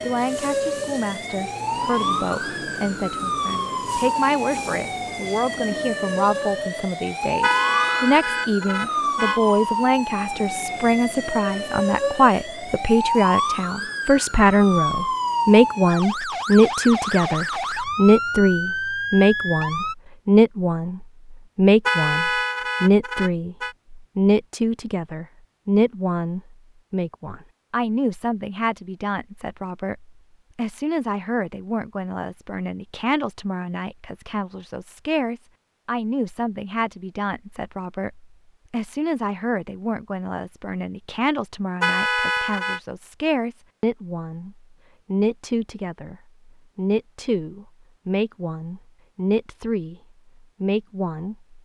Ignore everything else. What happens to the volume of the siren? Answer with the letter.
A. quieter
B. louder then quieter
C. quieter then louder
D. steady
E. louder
D.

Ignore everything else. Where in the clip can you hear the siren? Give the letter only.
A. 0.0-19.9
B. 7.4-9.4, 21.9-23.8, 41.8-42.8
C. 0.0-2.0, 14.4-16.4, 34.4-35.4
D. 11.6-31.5
A.